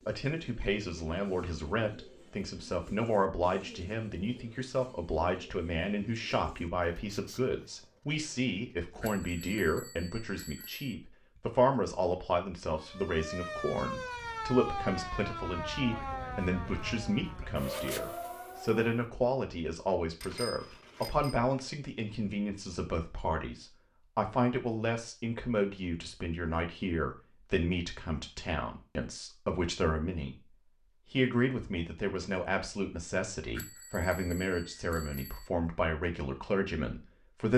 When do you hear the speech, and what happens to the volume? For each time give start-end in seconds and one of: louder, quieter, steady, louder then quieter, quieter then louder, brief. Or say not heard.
0.1-37.5 steady.